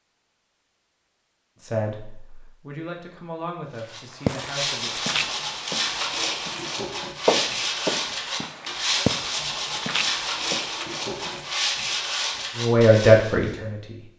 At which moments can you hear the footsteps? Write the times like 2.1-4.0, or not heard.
4.1-11.5.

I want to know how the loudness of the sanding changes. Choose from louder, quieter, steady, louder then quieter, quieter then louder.
steady.